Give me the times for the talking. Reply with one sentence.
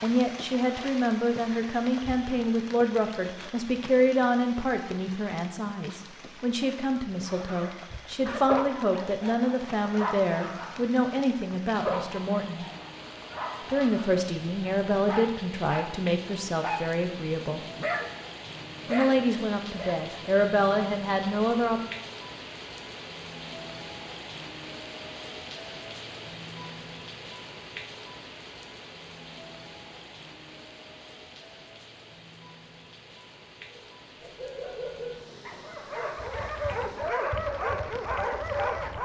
The talking can be heard from 0.0 to 12.7 s, from 13.7 to 17.6 s and from 18.9 to 21.8 s.